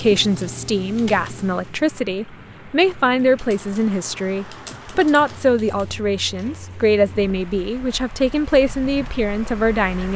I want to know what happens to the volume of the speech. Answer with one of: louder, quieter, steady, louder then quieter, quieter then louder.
steady.